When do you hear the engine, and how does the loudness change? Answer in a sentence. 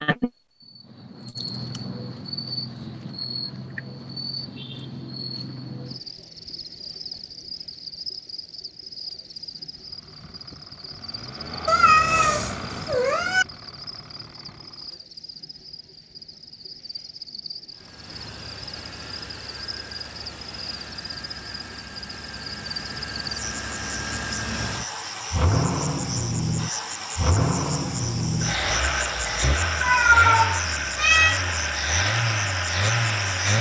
The engine can be heard from 9.7 to 15.1 s, getting louder then quieter; and from 17.7 to 33.5 s, getting louder.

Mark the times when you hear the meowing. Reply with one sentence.
The meowing can be heard from 11.7 to 13.4 s and from 29.8 to 31.4 s.